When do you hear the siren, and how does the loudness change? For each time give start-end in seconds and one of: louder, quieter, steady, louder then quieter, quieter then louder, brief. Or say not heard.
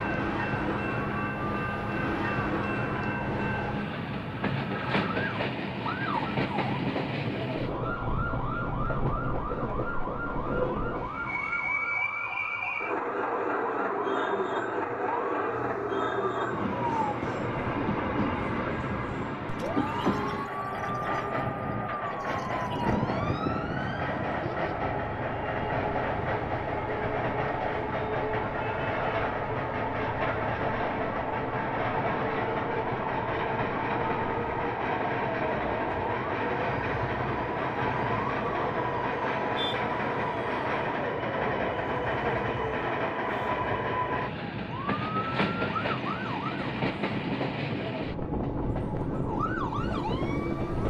0.0-46.6 steady
48.6-50.8 brief.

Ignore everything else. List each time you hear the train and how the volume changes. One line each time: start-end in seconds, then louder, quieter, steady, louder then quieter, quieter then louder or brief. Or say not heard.
0.0-50.8 steady.